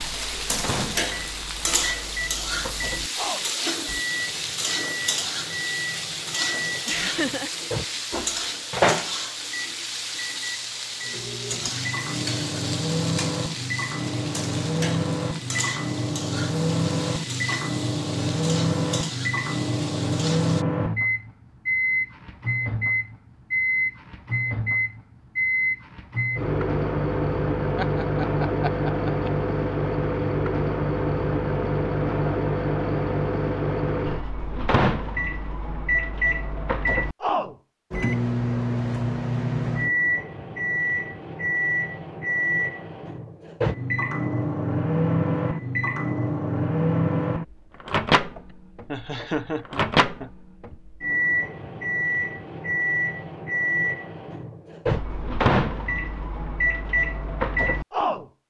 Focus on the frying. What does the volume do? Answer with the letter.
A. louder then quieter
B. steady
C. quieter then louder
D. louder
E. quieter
E.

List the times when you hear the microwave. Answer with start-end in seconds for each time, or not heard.
0.0-58.2.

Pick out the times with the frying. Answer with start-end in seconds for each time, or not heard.
0.0-20.6.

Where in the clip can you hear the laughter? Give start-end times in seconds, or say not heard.
6.8-7.5, 27.8-29.3, 48.5-50.8.